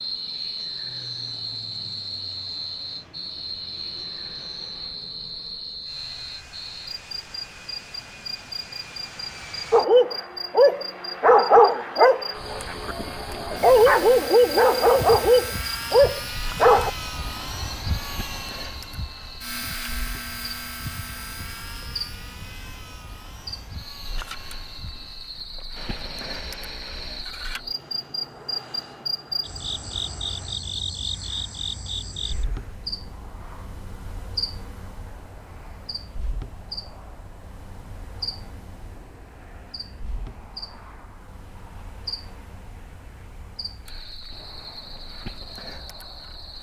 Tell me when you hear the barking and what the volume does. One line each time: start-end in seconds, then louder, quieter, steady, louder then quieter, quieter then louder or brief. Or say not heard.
9.7-16.9 steady.